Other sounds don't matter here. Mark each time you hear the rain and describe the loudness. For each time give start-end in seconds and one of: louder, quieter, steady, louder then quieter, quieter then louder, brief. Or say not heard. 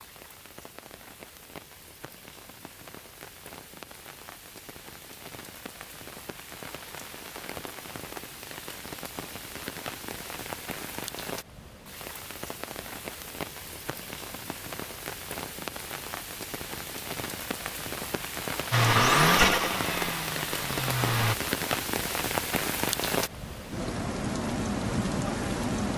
0.0-25.9 louder.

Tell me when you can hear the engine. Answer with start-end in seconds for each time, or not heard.
18.7-21.4.